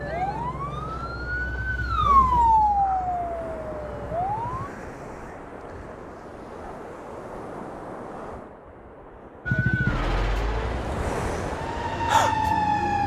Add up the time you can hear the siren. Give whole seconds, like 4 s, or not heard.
8 s.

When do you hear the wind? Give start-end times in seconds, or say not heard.
0.0-13.0.